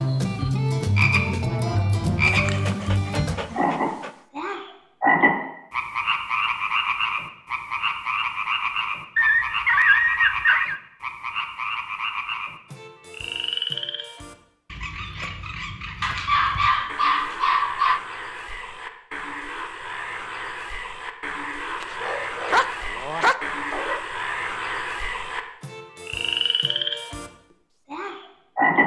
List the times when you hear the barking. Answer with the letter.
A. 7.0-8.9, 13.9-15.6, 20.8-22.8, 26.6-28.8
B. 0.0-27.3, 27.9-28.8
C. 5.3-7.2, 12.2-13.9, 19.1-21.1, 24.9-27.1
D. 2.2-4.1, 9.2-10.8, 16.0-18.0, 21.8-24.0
D.